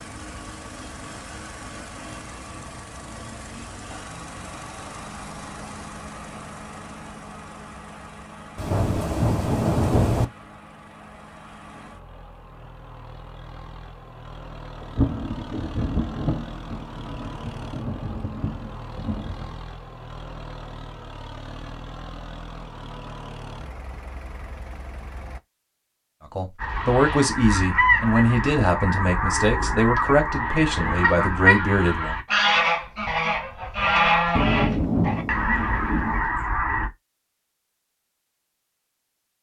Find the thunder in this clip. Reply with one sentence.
The thunder can be heard from 8.6 to 10.2 s, from 14.8 to 19.6 s and from 34.4 to 36.2 s.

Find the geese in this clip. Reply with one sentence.
You can hear the geese from 26.6 to 36.9 s.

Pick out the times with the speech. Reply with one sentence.
The speech can be heard from 26.4 to 32.1 s.